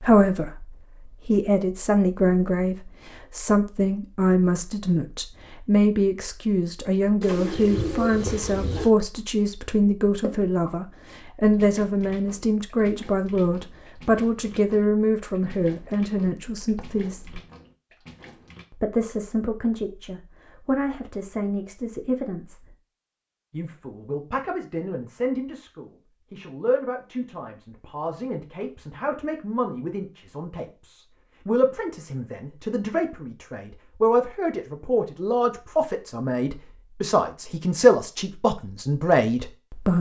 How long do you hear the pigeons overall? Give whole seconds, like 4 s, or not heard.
2 s.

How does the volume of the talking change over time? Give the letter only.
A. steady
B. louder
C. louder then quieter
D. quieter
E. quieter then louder
E.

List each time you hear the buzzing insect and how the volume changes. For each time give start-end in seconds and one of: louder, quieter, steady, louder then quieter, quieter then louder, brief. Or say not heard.
not heard.